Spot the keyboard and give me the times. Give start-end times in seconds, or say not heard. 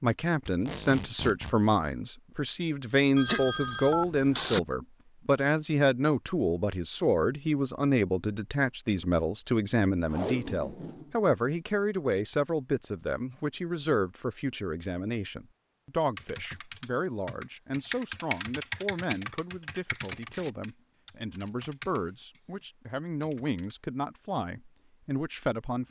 16.1-23.8.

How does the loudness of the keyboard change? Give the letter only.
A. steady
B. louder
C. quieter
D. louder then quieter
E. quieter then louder
D.